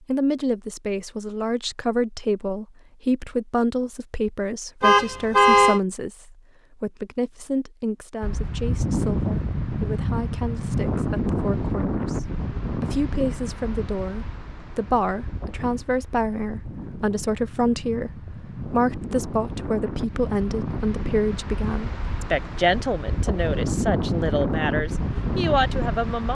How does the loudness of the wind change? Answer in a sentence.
The volume of the wind goes down, then up.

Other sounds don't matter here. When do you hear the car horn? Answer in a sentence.
The car horn can be heard from 4.8 to 5.8 s.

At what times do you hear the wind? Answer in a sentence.
The wind can be heard from 8.2 to 26.2 s.